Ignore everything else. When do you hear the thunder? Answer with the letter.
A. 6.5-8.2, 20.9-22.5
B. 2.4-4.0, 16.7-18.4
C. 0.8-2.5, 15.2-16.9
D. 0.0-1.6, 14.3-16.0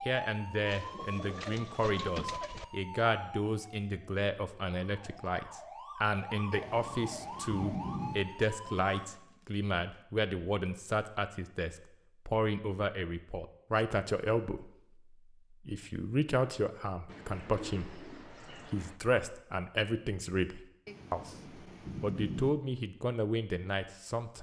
A.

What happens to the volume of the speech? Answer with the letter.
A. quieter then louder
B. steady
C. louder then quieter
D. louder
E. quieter
B.